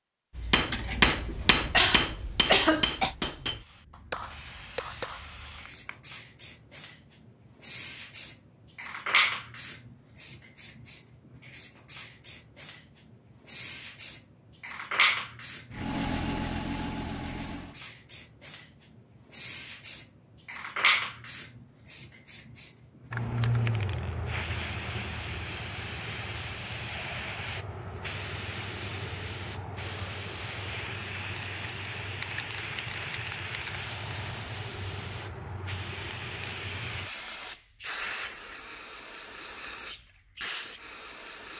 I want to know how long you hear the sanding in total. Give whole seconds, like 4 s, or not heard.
not heard.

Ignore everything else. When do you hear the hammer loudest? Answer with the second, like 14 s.
1 s.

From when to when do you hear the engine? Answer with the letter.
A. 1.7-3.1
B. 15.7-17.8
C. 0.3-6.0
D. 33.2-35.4
B.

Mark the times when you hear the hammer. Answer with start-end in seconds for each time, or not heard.
0.3-6.0.